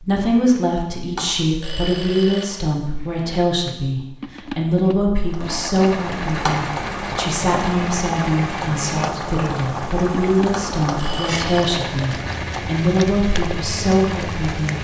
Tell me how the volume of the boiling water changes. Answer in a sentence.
The loudness of the boiling water stays about the same.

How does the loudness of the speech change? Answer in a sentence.
The loudness of the speech stays about the same.